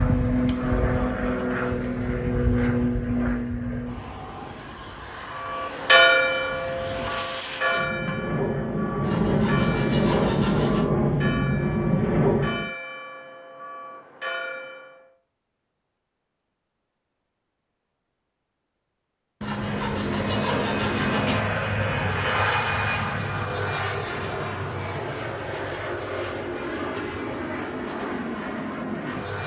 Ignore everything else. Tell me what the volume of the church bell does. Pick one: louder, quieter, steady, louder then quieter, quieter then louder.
quieter.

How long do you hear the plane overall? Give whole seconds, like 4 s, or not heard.
23 s.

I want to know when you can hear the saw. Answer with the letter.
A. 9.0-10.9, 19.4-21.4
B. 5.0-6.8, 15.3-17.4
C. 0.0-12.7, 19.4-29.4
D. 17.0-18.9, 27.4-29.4
A.